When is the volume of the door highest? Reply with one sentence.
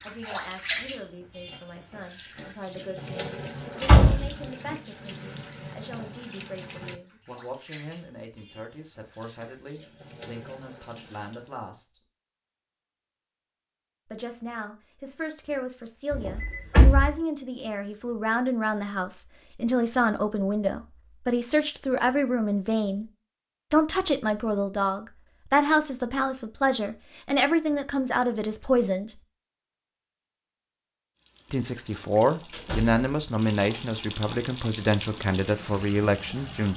The loudest moment of the door is at 4 seconds.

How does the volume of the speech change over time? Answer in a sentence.
The loudness of the speech goes up.